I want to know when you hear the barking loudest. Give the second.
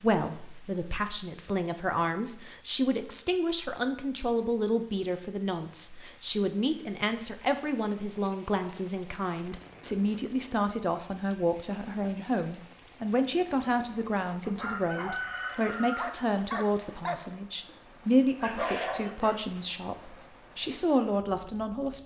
19 s.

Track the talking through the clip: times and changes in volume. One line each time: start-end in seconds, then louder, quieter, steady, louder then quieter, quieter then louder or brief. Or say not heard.
0.0-22.0 steady.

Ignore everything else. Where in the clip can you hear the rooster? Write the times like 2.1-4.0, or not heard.
14.4-16.1.